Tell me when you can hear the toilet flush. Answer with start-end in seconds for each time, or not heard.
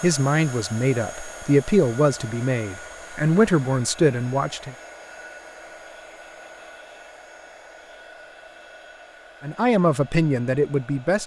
not heard.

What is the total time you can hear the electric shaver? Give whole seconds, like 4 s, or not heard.
not heard.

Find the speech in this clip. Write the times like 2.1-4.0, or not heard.
0.0-4.8, 9.4-11.2.